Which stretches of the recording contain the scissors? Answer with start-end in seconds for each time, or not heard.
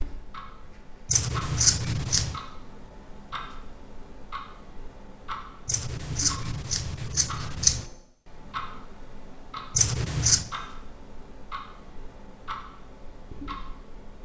1.1-2.4, 5.7-7.8, 9.8-10.5.